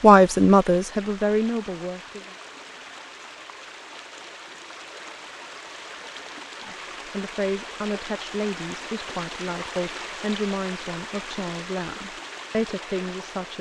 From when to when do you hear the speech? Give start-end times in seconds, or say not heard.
0.0-2.3, 6.7-13.5.